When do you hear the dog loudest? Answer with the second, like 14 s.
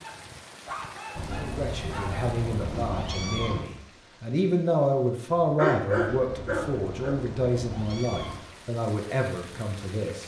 6 s.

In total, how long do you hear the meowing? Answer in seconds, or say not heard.
5 s.